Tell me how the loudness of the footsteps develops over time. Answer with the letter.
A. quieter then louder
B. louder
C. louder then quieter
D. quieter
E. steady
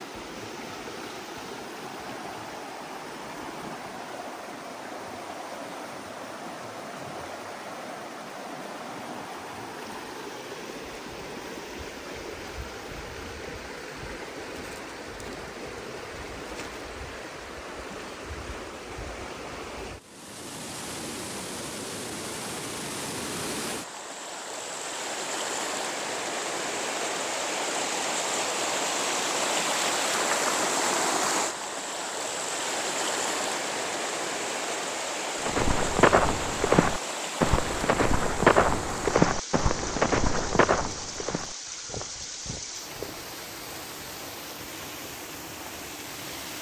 D.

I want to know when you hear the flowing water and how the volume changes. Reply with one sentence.
The flowing water can be heard from 0.0 to 46.5 s, getting louder then quieter.